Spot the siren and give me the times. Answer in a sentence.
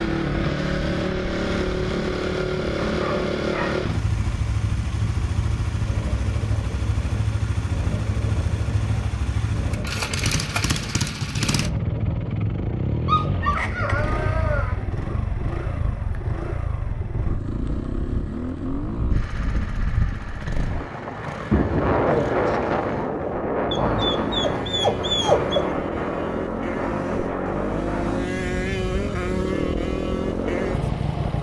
You can't hear the siren here.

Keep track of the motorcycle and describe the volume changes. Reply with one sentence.
The loudness of the motorcycle goes down, then up.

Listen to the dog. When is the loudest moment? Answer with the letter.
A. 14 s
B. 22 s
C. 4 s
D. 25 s
D.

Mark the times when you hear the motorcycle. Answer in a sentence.
The motorcycle can be heard from 0.0 to 31.3 s.